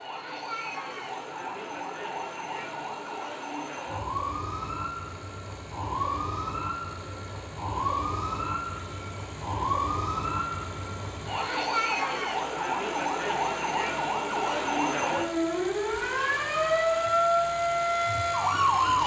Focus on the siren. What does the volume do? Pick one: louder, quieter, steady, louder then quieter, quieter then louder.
louder.